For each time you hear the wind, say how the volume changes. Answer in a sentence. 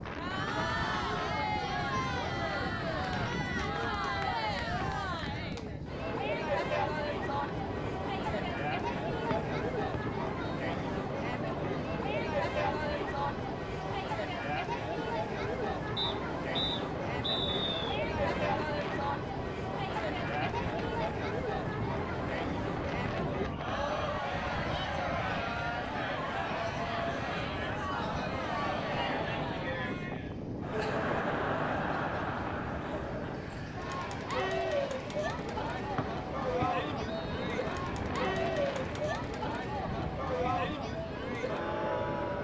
The wind can be heard from 0.0 to 42.4 s, at a steady volume.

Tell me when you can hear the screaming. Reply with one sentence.
The screaming can't be heard in this clip.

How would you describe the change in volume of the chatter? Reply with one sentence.
The volume of the chatter stays about the same.